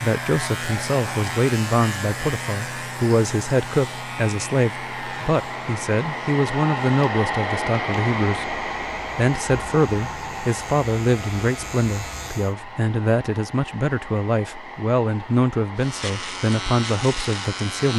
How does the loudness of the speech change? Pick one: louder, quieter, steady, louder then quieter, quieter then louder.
steady.